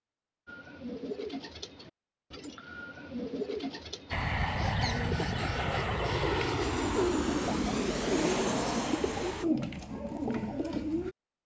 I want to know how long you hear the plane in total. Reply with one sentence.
You can hear the plane for 5 seconds altogether.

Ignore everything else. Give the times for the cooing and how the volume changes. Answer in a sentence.
You can hear the cooing from 0.5 to 11.2 s, getting louder.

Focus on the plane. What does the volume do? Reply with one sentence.
The loudness of the plane stays about the same.